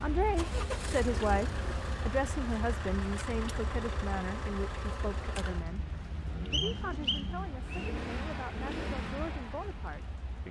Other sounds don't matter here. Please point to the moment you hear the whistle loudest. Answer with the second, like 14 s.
7 s.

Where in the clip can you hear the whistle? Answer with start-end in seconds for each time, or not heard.
6.5-8.0.